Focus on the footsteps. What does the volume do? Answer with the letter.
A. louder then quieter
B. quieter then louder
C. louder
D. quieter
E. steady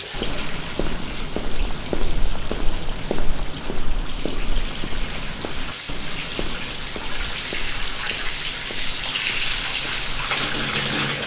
D.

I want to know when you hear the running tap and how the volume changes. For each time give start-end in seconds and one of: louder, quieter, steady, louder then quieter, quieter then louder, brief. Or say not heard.
0.0-11.2 louder.